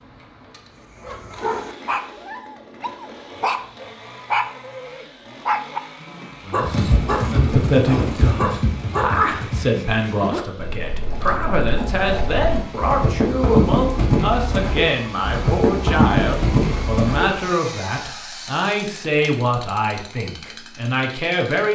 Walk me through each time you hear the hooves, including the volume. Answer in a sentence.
You can hear the hooves from 6.5 to 17.2 s, getting quieter then louder.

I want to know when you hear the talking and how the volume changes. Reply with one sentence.
The talking can be heard from 6.5 to 21.7 s, at a steady volume.